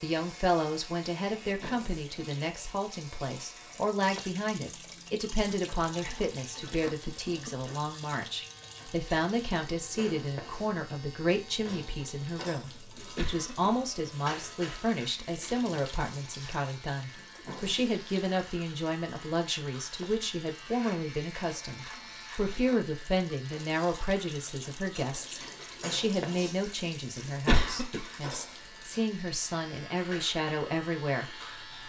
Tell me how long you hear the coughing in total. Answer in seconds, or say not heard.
2 s.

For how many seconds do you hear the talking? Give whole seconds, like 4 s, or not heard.
32 s.